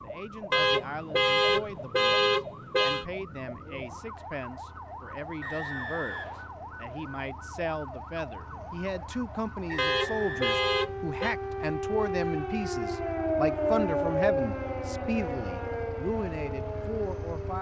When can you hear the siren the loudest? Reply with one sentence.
The volume of the siren peaks at 14 seconds.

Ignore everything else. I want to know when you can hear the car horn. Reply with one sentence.
You can hear the car horn from 0.5 to 3.0 s and from 9.8 to 11.3 s.